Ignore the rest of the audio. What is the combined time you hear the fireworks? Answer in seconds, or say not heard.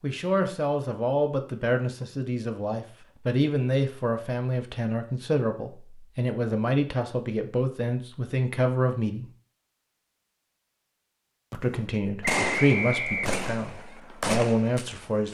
4 s.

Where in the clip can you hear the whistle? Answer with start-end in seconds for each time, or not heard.
12.2-13.4.